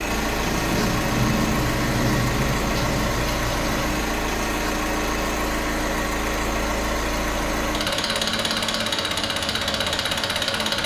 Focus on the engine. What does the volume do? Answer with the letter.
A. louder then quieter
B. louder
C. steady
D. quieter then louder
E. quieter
C.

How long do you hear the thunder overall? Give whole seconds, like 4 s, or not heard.
4 s.